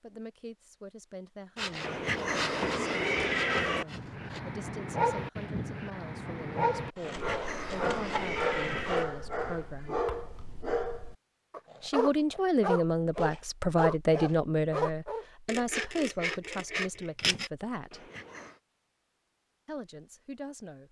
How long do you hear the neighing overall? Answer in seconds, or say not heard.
5 s.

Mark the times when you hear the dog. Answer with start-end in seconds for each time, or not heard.
3.9-15.2.